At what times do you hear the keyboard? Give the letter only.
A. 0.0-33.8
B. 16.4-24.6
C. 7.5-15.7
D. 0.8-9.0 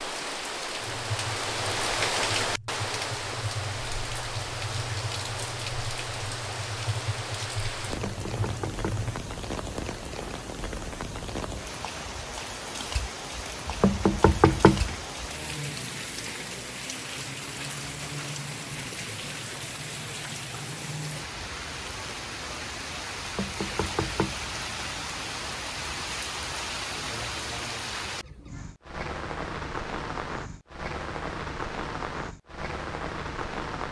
D.